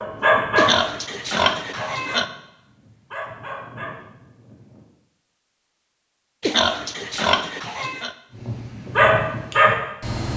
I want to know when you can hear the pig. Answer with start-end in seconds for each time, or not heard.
0.6-2.2, 6.4-8.2.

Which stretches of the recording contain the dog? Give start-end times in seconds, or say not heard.
0.0-4.8, 8.3-10.3.